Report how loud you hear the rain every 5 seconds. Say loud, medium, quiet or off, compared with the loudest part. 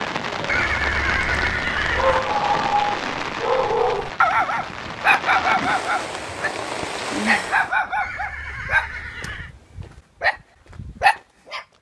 loud, loud, off.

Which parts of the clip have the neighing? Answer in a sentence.
The neighing can be heard from 0.5 to 2.2 s and from 8.0 to 9.6 s.